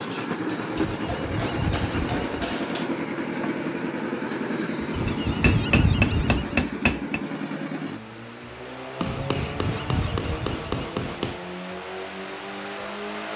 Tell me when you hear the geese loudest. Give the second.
6 s.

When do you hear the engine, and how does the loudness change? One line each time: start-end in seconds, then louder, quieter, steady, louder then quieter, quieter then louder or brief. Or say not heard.
0.0-13.3 quieter.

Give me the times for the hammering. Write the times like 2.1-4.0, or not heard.
0.5-2.9, 5.0-7.2, 9.0-11.4.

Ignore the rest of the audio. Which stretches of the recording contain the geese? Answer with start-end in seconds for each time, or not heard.
0.8-2.5, 4.9-6.6, 9.3-10.7.